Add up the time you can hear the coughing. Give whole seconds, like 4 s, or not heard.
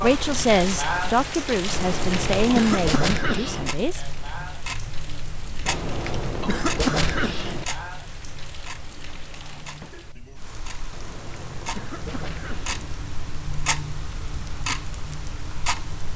6 s.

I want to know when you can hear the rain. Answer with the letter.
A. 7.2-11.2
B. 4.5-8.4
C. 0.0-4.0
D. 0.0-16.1
D.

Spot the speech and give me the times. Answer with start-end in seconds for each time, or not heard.
0.0-4.0.